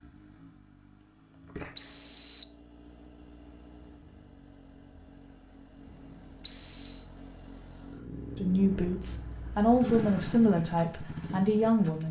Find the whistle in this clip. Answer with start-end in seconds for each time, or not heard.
1.8-2.5, 6.4-7.1.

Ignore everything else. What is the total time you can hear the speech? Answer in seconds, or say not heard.
4 s.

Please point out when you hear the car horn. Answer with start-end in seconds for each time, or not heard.
not heard.